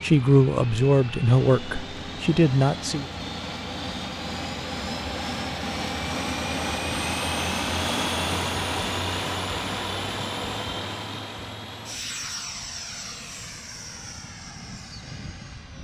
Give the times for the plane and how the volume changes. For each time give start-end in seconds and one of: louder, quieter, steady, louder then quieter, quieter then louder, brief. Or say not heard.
0.0-15.7 louder then quieter.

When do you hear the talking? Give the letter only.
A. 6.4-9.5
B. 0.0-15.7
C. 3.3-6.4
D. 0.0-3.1
D.